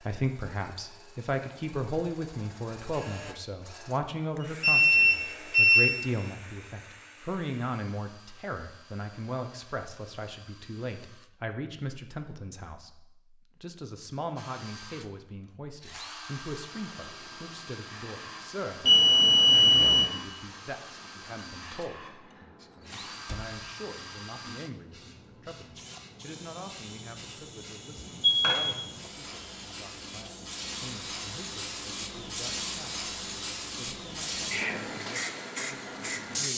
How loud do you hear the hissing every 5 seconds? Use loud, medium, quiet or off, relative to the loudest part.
off, off, off, quiet, quiet, medium, loud, loud.